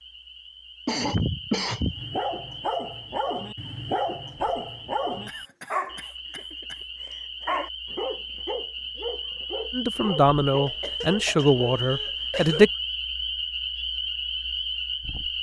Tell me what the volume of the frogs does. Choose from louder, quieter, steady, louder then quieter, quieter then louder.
louder.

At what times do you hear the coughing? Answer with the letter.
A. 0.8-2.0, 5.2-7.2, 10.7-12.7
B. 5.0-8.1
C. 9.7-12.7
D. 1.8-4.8
A.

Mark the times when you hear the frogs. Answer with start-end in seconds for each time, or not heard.
0.0-15.3.